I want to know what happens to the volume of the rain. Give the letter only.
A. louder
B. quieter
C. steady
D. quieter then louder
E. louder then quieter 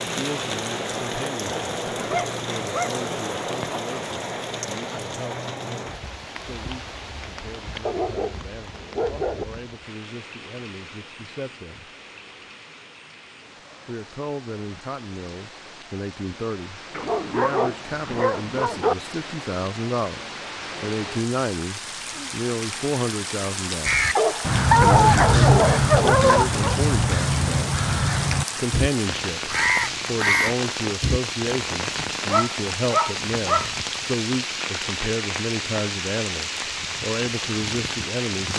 D.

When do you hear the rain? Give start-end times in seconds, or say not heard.
0.0-38.5.